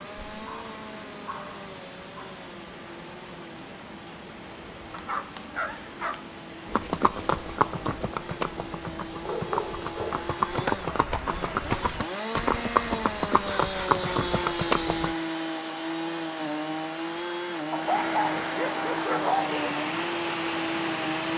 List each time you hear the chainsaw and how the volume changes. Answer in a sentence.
You can hear the chainsaw from 0.0 to 21.3 s, getting louder.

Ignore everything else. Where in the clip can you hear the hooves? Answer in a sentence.
The hooves can be heard from 6.7 to 15.2 s.